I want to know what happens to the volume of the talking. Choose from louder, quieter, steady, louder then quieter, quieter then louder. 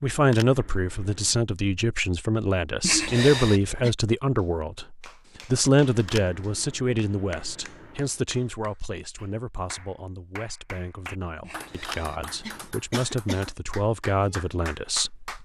quieter then louder.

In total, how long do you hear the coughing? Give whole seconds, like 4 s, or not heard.
3 s.